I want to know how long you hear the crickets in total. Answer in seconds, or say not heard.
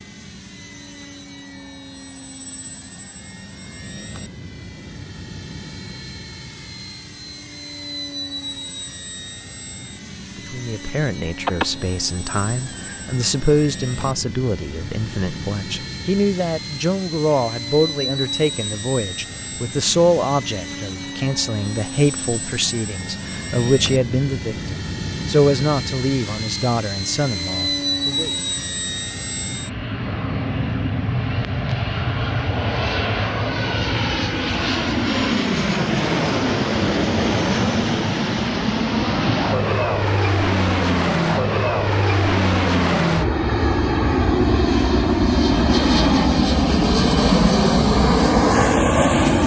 not heard.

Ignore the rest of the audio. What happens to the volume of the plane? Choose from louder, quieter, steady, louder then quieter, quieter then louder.
louder.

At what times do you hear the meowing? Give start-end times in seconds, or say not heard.
11.4-13.2.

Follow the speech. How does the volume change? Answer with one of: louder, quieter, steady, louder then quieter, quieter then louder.
steady.